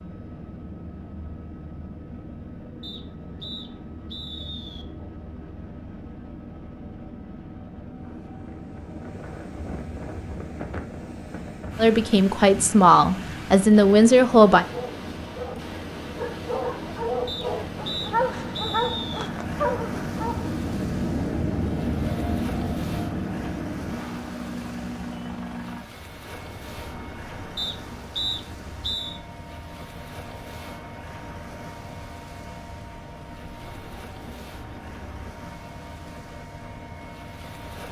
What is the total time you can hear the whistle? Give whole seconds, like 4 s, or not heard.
6 s.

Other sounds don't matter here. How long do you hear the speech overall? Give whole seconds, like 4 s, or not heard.
3 s.